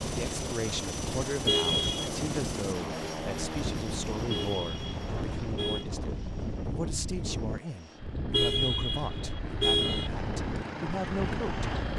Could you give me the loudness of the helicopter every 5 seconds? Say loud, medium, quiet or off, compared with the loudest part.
loud, medium, loud.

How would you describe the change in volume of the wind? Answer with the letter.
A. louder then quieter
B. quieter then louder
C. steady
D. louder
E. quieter
C.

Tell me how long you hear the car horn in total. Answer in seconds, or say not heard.
4 s.